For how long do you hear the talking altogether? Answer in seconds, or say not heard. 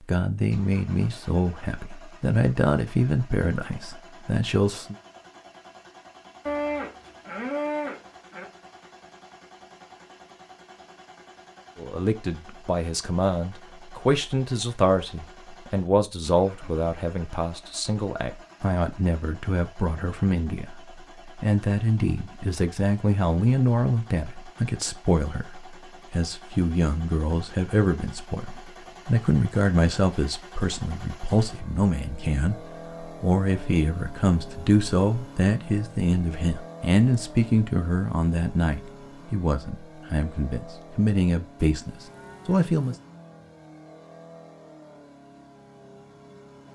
36 s.